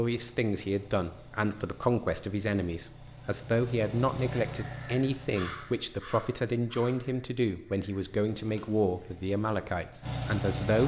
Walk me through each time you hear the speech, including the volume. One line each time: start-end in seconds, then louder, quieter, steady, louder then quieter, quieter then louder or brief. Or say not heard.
0.0-10.8 steady.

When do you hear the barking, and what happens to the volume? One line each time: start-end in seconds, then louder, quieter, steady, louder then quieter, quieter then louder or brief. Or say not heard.
not heard.